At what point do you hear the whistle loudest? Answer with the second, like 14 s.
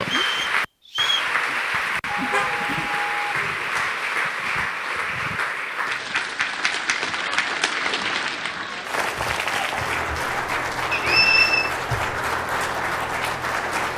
11 s.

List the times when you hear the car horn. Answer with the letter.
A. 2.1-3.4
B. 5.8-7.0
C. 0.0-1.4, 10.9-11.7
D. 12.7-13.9
A.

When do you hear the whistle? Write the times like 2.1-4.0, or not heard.
0.0-1.4, 10.9-11.7.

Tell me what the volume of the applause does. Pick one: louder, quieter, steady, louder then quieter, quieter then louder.
steady.